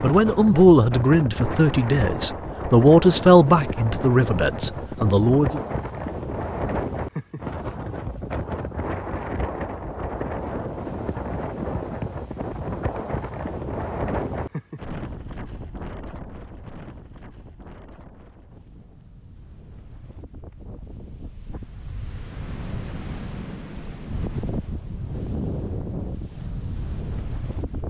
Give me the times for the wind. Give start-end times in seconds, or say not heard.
0.0-27.8.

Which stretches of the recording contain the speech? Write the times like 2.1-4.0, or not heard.
0.0-5.6.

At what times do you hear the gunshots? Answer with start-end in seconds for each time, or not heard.
not heard.